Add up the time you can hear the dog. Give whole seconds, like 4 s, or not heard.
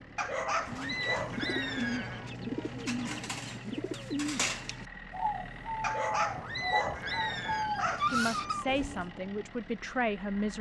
5 s.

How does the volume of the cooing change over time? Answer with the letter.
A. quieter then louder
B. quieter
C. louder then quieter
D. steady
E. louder
D.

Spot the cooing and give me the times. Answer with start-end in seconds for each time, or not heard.
0.7-9.1.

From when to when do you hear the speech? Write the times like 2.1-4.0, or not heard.
8.1-10.5.